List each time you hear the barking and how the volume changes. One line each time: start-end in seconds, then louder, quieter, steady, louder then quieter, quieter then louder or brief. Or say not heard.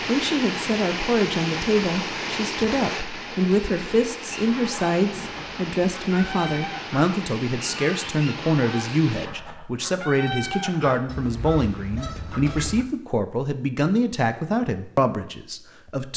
not heard.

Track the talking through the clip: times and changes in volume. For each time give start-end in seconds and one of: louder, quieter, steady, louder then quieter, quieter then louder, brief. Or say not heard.
0.0-16.1 steady.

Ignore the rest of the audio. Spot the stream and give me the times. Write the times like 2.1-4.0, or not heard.
0.0-9.3.